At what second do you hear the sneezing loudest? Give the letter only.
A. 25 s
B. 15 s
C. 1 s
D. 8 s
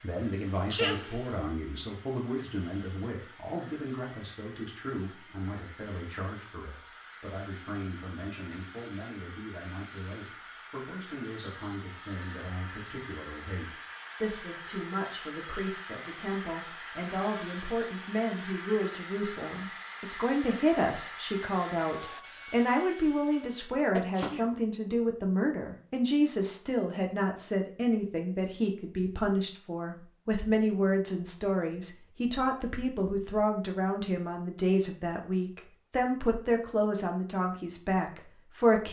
C.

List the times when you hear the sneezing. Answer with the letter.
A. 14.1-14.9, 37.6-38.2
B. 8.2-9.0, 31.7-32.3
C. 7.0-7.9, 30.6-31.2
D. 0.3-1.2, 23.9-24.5
D.